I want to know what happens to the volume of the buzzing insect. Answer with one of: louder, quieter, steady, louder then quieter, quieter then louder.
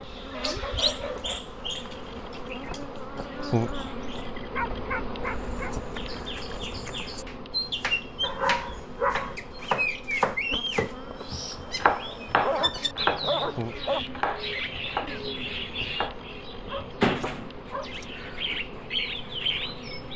quieter.